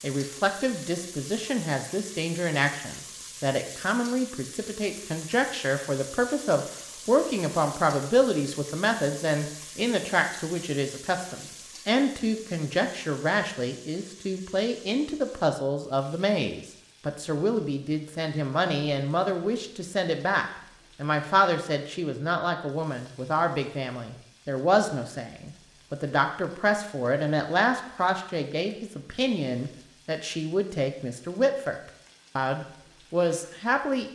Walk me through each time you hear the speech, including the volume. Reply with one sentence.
You can hear the speech from 0.0 to 31.8 s, at a steady volume; and briefly from 32.4 to 34.1 s.